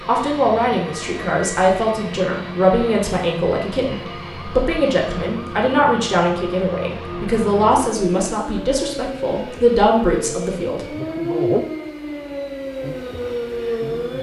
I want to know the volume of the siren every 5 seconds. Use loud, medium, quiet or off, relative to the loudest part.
medium, medium, loud.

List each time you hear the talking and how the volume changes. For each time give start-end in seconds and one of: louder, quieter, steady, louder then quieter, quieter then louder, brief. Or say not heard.
0.1-10.8 steady.